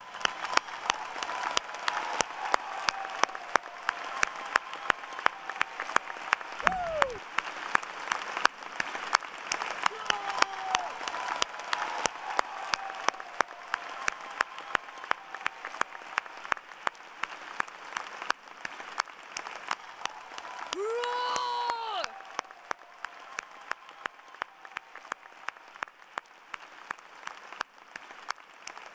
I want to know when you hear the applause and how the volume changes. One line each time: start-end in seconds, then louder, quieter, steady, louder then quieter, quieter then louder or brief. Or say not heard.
0.0-28.8 quieter.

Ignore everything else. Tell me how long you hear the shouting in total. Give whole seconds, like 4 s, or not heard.
3 s.